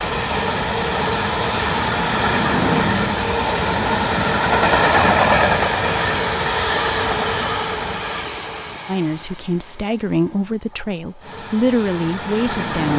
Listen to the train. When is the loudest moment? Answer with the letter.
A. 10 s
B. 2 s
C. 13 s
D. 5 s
D.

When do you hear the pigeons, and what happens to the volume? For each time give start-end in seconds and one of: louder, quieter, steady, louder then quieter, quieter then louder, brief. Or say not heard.
not heard.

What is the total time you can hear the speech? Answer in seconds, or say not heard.
4 s.